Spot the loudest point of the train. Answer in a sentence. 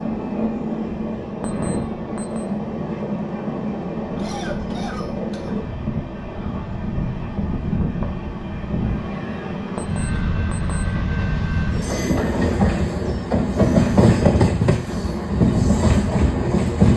The volume of the train peaks at 14 seconds.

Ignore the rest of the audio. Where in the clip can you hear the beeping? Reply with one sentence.
The beeping can be heard from 1.4 to 2.5 s and from 9.8 to 10.8 s.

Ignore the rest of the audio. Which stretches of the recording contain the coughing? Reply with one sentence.
The coughing can be heard from 4.2 to 5.6 s.